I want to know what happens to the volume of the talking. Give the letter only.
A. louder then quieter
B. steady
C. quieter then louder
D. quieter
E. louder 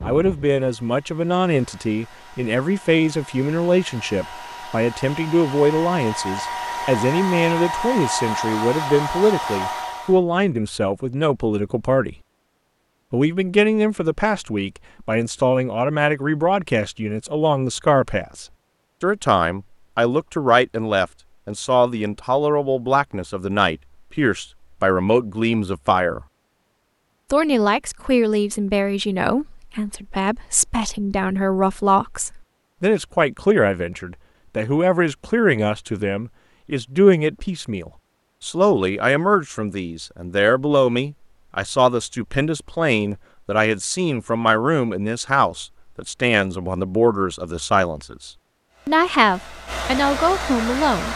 B.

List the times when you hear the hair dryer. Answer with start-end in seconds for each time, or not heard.
0.0-10.2, 48.7-51.1.